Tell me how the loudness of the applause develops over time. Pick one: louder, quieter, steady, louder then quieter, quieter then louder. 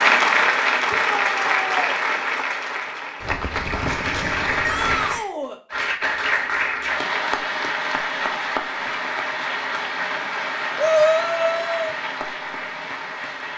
quieter.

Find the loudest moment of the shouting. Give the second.
11 s.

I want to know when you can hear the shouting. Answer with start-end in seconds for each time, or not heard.
0.9-1.9, 4.6-5.6, 10.8-11.9.